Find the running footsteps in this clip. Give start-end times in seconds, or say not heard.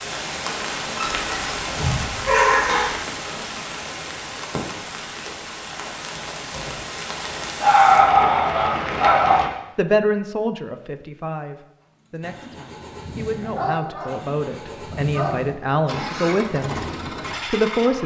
not heard.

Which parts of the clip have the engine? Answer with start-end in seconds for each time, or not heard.
11.8-18.0.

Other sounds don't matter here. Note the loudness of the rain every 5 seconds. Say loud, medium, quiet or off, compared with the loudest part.
loud, loud, off, off.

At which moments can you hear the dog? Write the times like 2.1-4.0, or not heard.
0.9-3.1, 7.6-9.4, 13.4-15.3.